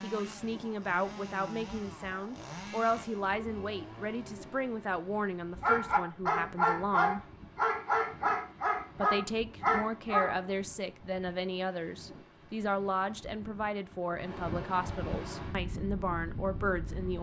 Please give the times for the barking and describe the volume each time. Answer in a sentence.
You can hear the barking from 5.6 to 10.4 s, at a steady volume.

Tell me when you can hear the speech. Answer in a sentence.
The speech can be heard from 0.0 to 7.2 s and from 8.9 to 17.1 s.